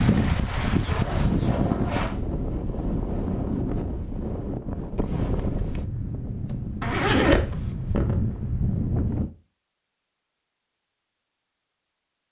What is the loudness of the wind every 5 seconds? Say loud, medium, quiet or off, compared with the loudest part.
loud, loud, off.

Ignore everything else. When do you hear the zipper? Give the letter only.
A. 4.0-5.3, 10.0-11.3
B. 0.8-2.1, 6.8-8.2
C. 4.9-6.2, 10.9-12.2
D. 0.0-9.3
B.